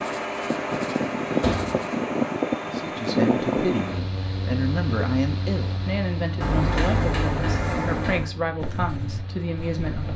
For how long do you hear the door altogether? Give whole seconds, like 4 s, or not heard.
2 s.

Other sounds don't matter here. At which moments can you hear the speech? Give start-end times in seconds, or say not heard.
2.6-10.1.